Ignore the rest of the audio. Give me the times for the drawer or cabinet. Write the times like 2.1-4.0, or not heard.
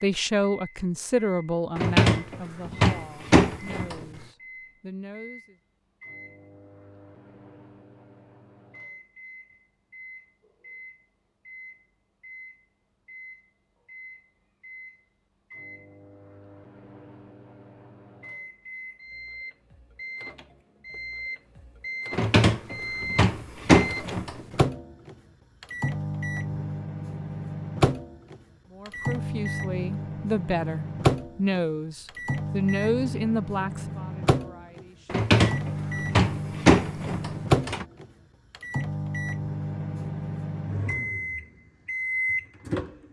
1.8-4.0, 22.1-24.4, 35.0-37.9.